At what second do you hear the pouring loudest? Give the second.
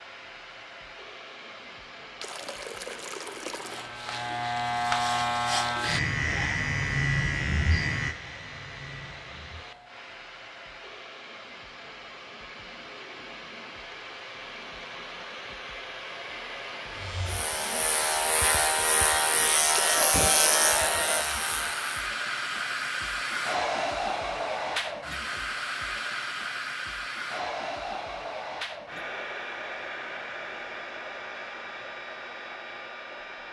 20 s.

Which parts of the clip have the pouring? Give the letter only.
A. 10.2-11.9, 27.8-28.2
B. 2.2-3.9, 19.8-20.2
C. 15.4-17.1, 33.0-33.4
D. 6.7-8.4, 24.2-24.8
B.